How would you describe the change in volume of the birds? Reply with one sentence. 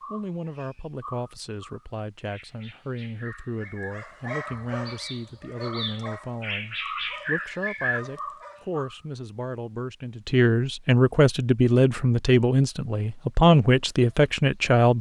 The loudness of the birds goes up.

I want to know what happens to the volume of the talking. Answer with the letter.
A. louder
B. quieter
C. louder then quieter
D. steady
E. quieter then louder
A.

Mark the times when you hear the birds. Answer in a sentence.
The birds can be heard from 0.0 to 8.9 s.